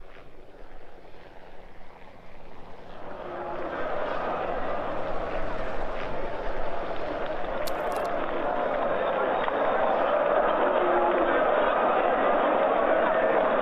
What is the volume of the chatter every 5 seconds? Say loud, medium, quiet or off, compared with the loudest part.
medium, medium, loud.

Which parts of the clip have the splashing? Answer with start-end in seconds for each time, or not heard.
7.7-8.2.